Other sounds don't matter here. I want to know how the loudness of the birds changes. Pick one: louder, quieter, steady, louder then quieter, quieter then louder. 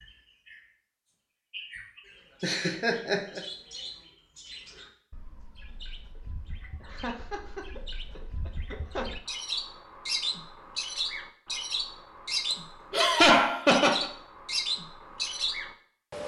louder.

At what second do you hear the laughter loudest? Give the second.
13 s.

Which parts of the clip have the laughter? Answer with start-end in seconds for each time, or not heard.
2.4-3.4, 6.8-9.1, 12.5-14.1.